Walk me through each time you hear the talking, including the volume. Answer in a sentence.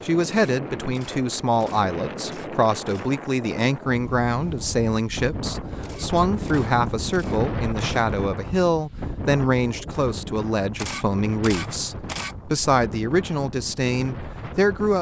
The talking can be heard from 0.0 to 14.9 s, at a steady volume.